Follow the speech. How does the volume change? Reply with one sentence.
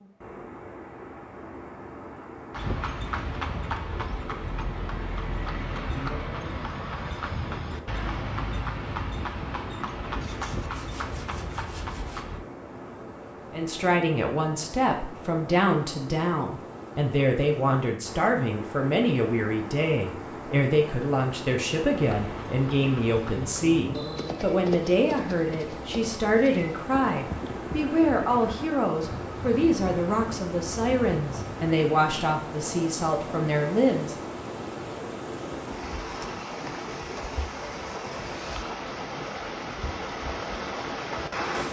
The volume of the speech stays about the same.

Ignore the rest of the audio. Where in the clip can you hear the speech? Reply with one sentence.
You can hear the speech from 13.5 to 34.1 s.